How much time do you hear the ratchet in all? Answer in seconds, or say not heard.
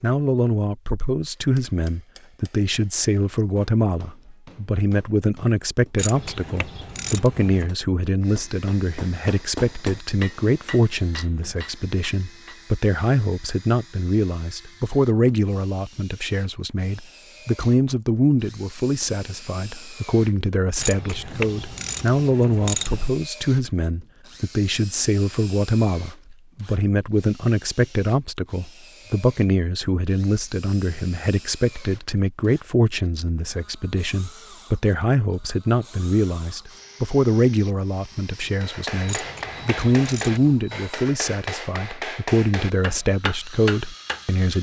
6 s.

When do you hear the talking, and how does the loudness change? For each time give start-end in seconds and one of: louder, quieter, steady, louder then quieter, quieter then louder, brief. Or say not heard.
0.0-44.5 steady.